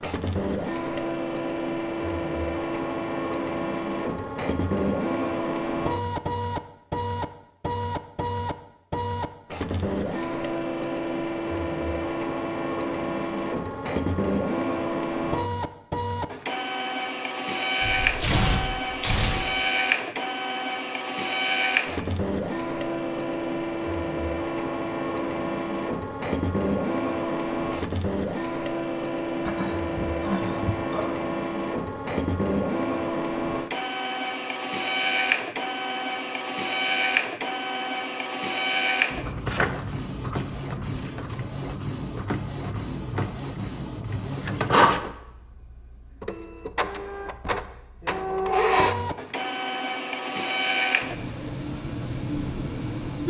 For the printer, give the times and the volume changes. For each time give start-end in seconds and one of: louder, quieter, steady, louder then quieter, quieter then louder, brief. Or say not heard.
0.0-53.2 steady.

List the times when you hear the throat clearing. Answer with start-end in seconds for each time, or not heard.
29.4-31.2.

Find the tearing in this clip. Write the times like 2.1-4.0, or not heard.
17.8-19.4.